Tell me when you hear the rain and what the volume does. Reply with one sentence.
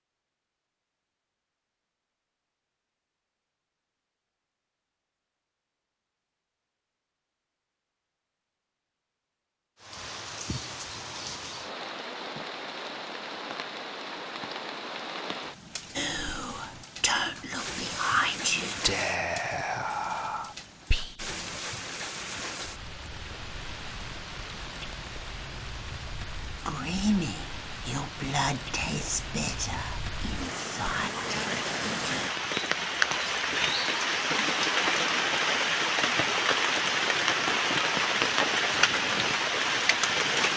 The rain can be heard from 9.8 to 40.5 s, getting louder.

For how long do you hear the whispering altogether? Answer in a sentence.
You can hear the whispering for 11 seconds altogether.